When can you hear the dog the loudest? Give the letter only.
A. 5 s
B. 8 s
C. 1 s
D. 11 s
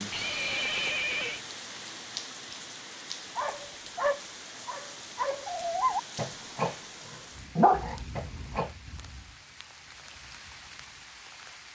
B.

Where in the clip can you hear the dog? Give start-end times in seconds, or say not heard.
3.4-6.8, 7.5-8.7.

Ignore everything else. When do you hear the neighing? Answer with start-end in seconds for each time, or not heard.
0.1-1.4.